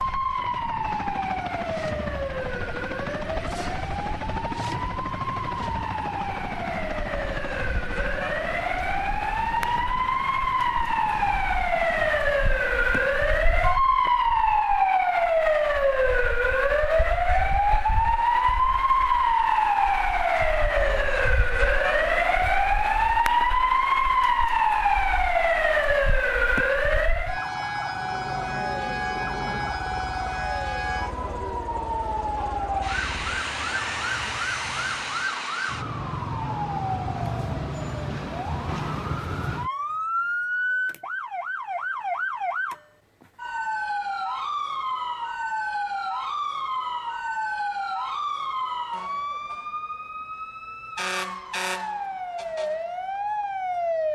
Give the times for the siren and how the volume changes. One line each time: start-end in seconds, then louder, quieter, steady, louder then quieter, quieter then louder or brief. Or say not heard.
0.0-54.1 louder then quieter.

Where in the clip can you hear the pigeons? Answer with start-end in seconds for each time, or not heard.
not heard.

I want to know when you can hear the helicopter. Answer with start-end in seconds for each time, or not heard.
0.0-13.7, 27.9-35.4.